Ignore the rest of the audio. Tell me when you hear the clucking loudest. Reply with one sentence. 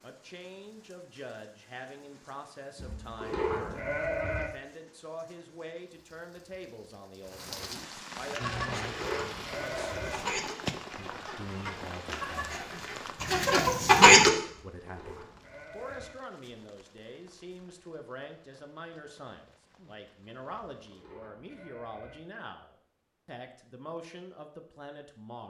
The loudest moment of the clucking is at 14 seconds.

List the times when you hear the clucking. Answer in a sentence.
You can hear the clucking from 8.3 to 14.3 s.